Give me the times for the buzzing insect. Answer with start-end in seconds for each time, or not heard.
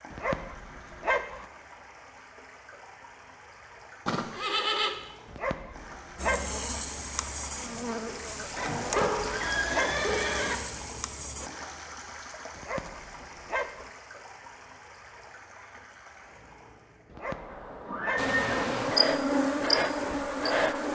6.2-11.5, 18.1-20.8.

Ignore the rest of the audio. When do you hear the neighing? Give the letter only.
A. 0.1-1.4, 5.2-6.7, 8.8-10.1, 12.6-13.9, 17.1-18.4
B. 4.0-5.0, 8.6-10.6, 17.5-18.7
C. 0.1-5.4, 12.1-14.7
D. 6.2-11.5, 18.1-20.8
B.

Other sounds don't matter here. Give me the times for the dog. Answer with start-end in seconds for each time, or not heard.
0.1-1.4, 5.2-6.7, 8.8-10.1, 12.6-13.9, 17.1-18.4.